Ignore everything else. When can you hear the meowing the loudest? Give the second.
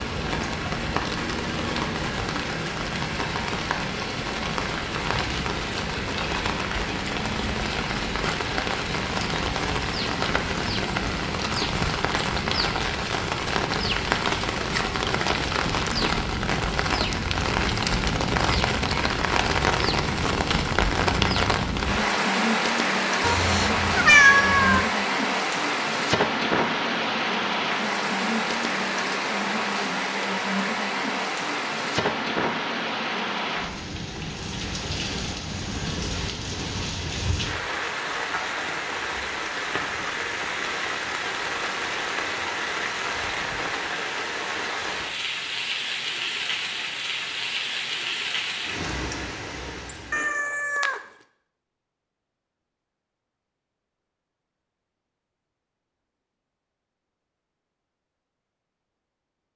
24 s.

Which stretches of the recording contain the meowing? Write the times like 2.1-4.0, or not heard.
23.2-24.9, 50.1-51.0.